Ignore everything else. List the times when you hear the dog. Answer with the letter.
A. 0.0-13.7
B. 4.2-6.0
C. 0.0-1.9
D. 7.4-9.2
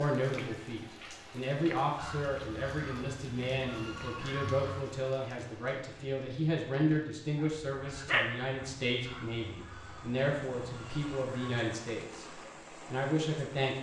D.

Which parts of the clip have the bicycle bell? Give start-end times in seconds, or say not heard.
not heard.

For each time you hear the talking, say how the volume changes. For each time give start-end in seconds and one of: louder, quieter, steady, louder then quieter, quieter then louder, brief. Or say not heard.
0.0-13.7 steady.